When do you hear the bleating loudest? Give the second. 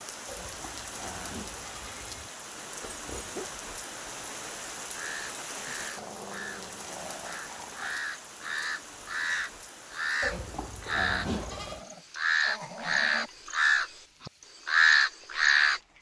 11 s.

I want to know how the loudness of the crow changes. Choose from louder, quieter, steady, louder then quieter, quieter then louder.
louder.